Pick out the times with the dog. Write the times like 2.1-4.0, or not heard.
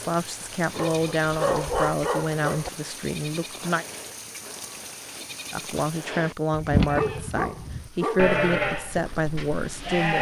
0.7-2.7, 6.8-8.3.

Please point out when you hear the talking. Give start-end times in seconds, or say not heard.
0.0-3.9, 5.5-10.1.